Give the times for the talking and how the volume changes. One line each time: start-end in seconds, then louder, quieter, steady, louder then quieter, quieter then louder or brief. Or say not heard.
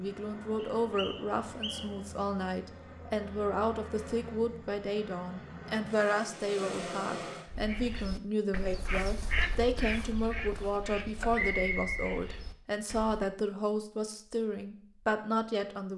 0.0-15.9 steady.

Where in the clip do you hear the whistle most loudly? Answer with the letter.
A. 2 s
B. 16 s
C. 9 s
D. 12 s
D.